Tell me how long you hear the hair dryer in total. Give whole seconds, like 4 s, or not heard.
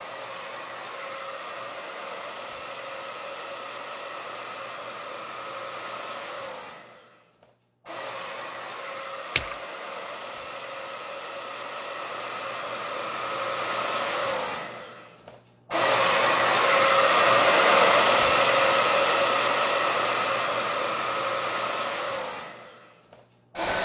24 s.